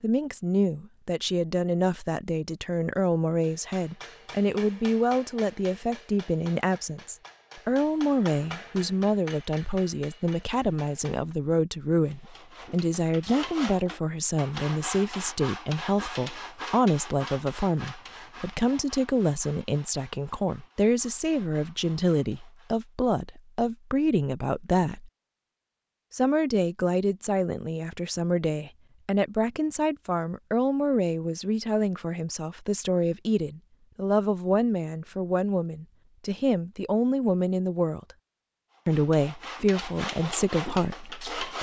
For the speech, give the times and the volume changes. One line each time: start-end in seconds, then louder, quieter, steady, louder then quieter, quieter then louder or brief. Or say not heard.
0.0-25.1 steady
26.1-38.1 steady
38.9-41.5 brief.